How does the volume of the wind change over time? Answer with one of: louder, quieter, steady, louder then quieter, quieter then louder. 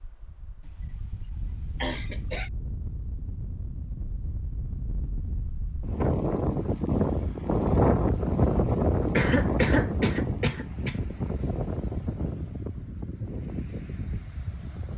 louder then quieter.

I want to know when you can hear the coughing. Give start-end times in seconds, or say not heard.
0.7-2.5, 9.2-10.9.